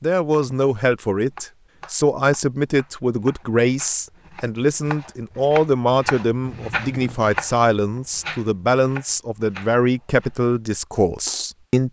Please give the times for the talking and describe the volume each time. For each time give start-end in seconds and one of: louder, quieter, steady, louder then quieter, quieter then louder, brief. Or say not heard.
0.0-11.8 steady.